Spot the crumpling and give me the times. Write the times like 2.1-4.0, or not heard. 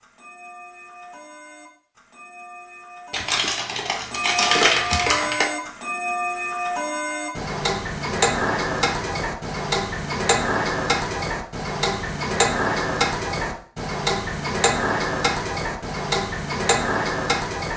3.1-5.5.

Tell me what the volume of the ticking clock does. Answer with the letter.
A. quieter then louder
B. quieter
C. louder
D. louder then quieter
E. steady
C.